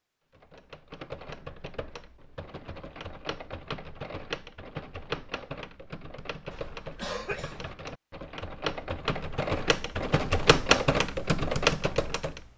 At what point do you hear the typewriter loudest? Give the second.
11 s.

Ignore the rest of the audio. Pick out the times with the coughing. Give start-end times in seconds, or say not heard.
6.5-7.8.